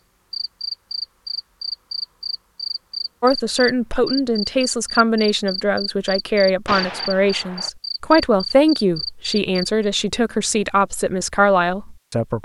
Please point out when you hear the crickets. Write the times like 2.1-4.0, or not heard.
0.3-9.8.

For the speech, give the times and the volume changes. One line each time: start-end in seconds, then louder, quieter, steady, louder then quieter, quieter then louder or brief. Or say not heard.
3.2-12.3 steady.